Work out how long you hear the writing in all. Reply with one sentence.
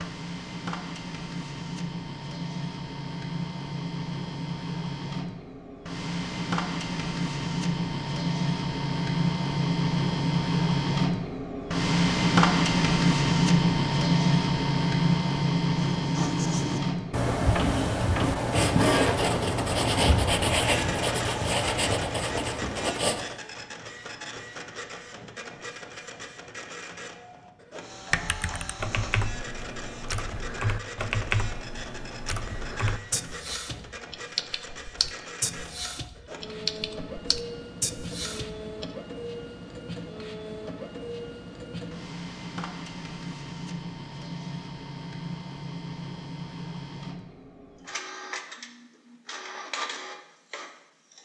You can hear the writing for 7 seconds altogether.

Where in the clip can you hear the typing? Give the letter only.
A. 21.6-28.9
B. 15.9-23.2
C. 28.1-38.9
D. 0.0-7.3
C.